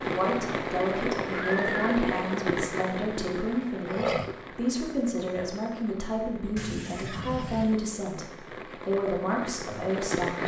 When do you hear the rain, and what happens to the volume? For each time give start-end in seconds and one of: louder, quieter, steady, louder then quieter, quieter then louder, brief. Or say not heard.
0.0-10.4 quieter then louder.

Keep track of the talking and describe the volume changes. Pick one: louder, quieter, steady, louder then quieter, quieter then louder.
steady.